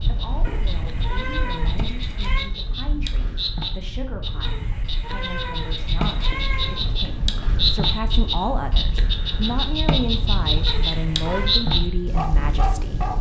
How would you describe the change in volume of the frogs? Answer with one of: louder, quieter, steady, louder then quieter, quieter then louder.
louder.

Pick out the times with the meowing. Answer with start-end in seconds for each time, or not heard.
0.5-2.5, 4.4-6.8, 10.7-11.7.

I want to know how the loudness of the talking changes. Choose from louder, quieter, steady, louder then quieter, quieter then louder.
louder.